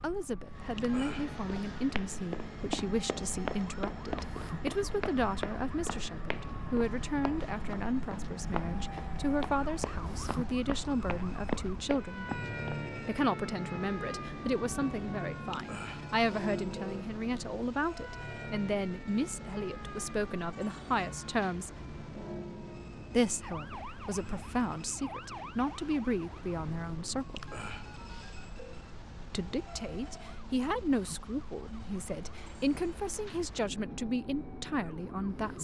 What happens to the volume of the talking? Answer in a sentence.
The loudness of the talking stays about the same.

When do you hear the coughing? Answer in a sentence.
The coughing can't be heard in this clip.